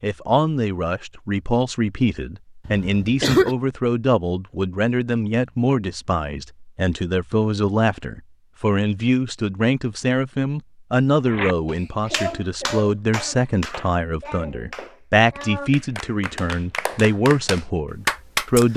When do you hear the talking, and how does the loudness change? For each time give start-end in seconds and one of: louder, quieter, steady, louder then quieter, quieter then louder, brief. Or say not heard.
0.0-18.7 steady.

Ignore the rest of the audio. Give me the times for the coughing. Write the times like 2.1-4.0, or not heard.
2.6-3.5.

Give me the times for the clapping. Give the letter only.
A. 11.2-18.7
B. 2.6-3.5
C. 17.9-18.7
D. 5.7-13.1
A.